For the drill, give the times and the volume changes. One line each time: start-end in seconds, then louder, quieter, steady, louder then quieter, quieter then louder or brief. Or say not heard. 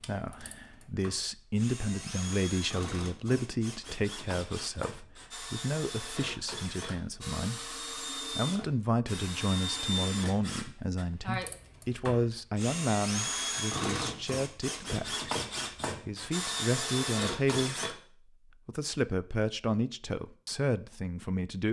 0.0-17.9 louder.